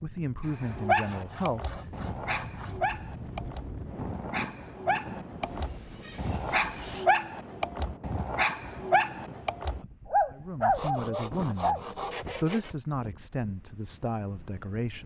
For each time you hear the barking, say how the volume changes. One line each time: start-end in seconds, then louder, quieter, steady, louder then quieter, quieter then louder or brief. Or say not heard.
0.6-11.8 louder.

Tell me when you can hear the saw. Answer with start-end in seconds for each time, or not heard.
1.0-2.8, 5.4-7.1, 10.8-12.8.